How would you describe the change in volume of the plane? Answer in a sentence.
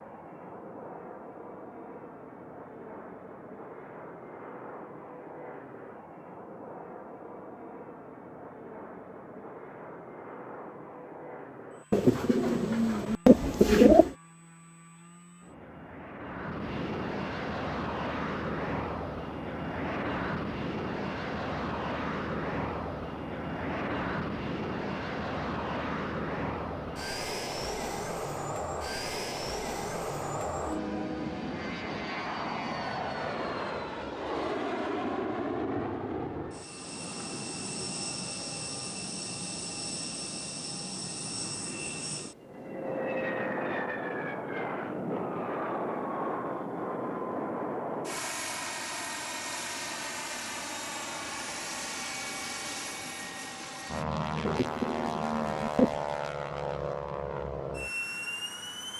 The volume of the plane goes up.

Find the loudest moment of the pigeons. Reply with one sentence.
The volume of the pigeons peaks at 14 seconds.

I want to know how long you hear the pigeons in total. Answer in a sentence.
The pigeons can be heard for 4 seconds in total.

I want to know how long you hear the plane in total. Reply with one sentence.
You can hear the plane for 59 seconds altogether.